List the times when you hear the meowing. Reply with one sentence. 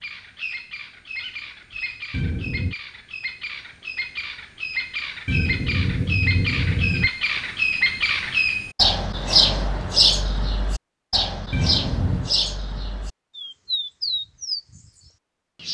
The meowing can be heard from 2.1 to 2.8 s, from 5.2 to 7.1 s and from 11.5 to 12.3 s.